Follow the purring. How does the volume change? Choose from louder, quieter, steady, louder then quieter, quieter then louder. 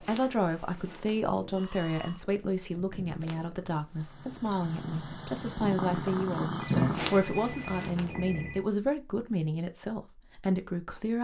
louder.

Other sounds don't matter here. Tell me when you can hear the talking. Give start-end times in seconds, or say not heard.
0.0-11.1.